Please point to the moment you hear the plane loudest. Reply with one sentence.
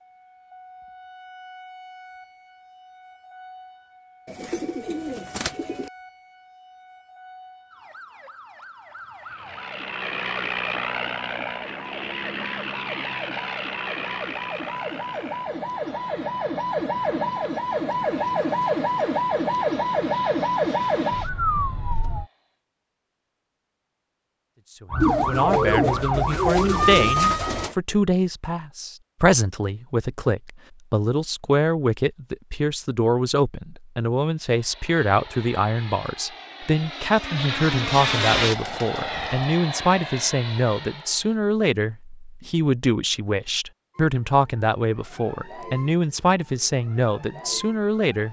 The volume of the plane peaks at 38 seconds.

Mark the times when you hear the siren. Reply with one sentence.
The siren can be heard from 0.0 to 22.2 s, from 24.9 to 27.7 s and from 44.0 to 48.2 s.